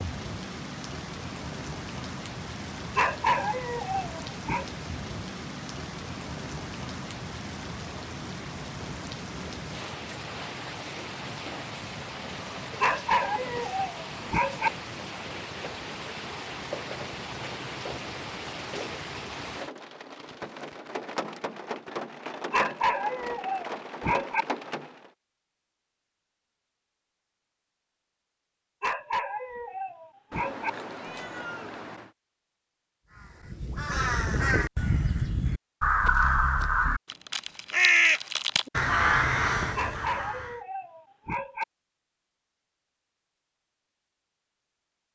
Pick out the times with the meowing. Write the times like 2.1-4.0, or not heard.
30.3-32.1.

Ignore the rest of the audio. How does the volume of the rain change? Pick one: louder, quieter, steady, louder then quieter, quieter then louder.
steady.